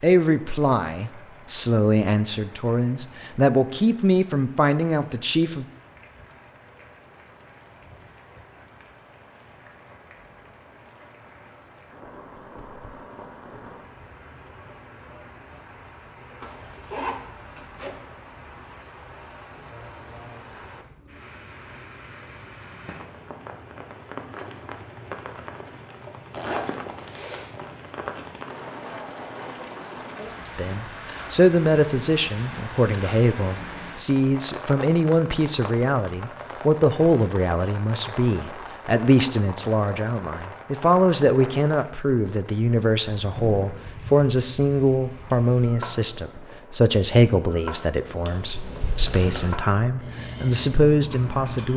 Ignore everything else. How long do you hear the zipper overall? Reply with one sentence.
You can hear the zipper for 3 seconds altogether.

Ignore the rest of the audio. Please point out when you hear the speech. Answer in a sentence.
You can hear the speech from 0.0 to 5.7 s and from 30.6 to 51.7 s.